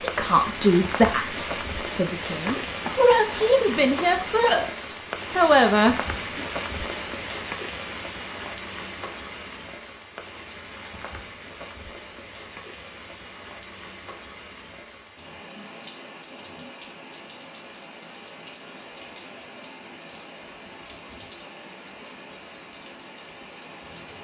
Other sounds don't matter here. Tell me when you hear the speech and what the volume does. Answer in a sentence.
You can hear the speech from 0.0 to 6.5 s, getting quieter then louder.